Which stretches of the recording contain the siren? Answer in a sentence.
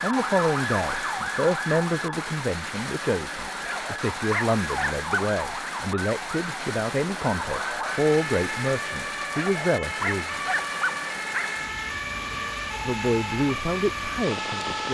You can hear the siren from 0.0 to 14.8 s.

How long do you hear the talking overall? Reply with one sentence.
The talking can be heard for 12 seconds in total.